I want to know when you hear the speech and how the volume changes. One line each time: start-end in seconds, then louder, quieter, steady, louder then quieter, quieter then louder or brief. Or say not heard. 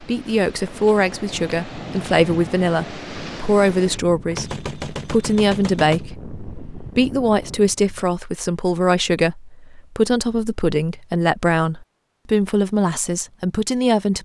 0.0-14.2 steady.